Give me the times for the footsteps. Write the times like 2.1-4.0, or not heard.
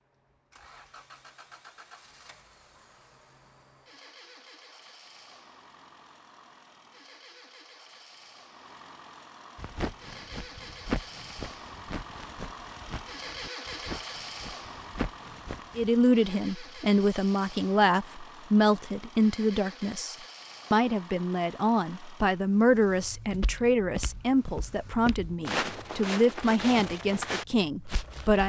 9.6-15.9, 23.2-28.4.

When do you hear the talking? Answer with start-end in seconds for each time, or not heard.
15.8-28.4.